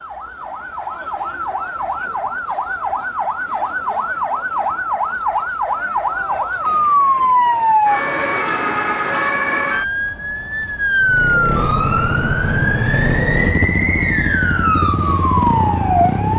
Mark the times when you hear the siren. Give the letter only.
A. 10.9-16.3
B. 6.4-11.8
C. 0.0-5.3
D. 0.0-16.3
D.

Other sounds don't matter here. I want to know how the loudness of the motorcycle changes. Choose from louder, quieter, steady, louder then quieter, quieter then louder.
steady.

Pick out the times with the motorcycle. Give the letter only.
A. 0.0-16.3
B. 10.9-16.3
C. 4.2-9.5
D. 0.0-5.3
B.